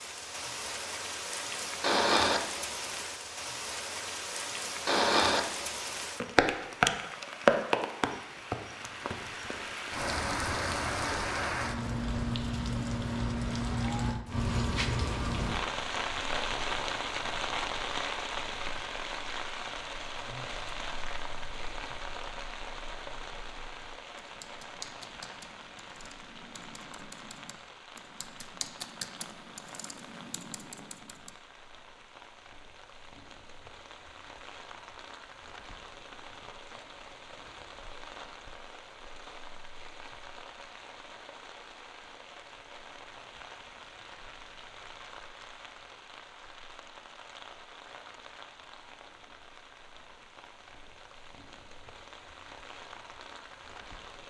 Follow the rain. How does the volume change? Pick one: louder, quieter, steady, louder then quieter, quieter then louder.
quieter.